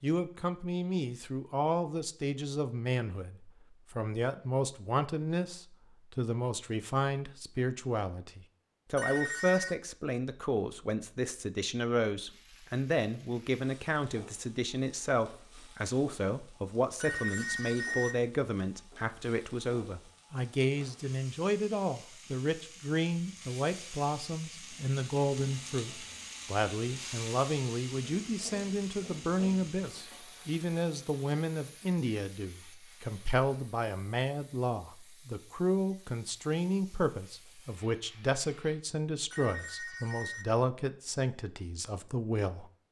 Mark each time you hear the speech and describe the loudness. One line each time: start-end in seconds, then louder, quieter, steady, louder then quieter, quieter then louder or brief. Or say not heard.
0.0-42.7 steady.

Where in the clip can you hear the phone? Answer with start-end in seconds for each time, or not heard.
8.9-9.8, 17.0-18.1, 39.3-40.5.